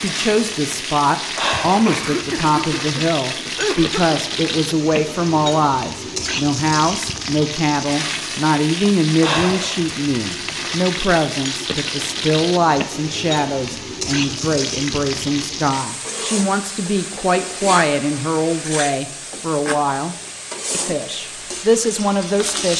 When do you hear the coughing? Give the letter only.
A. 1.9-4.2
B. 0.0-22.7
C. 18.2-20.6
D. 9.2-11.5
A.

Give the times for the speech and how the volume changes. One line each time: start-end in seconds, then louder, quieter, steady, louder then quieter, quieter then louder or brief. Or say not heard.
0.0-22.7 steady.